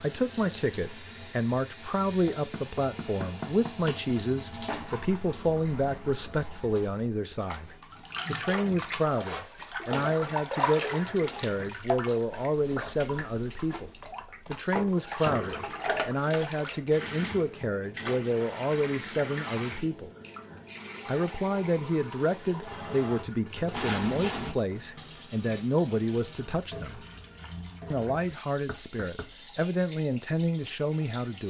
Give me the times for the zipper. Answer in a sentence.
The zipper can be heard from 4.7 to 5.4 s, from 10.9 to 11.8 s and from 23.7 to 24.6 s.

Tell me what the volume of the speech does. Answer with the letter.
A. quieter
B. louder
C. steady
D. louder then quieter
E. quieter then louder
C.